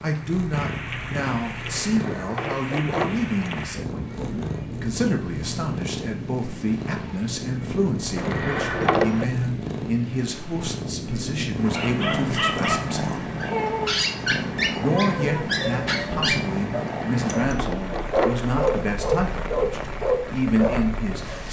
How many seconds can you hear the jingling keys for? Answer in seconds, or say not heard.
5 s.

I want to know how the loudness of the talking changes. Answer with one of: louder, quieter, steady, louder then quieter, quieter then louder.
steady.